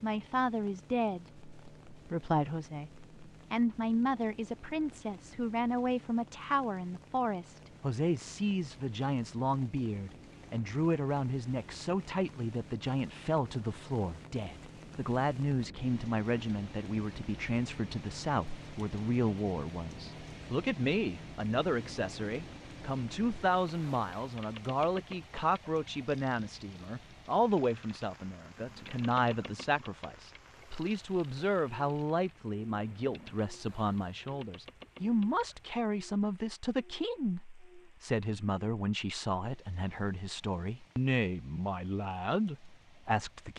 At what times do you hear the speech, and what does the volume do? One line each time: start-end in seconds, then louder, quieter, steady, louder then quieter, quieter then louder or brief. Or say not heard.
0.0-43.5 steady.